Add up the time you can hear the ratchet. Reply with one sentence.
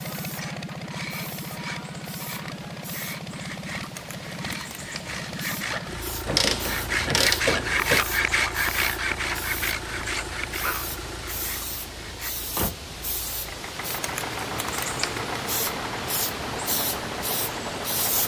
The ratchet can be heard for 2 seconds in total.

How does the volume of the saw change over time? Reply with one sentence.
The loudness of the saw goes up, then down.